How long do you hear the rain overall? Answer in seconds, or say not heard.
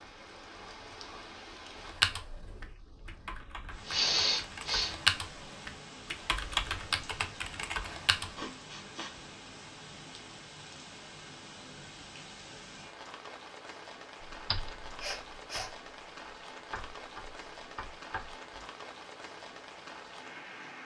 21 s.